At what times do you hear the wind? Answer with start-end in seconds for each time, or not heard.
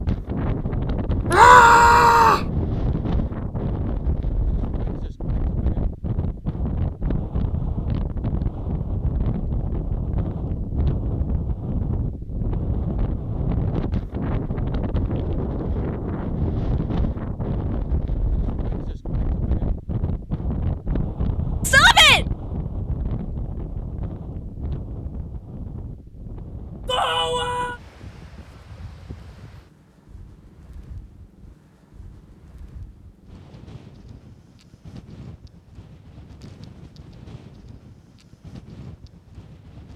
0.0-39.9.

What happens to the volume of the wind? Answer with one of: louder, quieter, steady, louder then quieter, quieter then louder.
quieter.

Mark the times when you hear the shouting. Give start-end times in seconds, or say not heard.
1.3-2.5, 21.6-22.2, 26.9-27.8.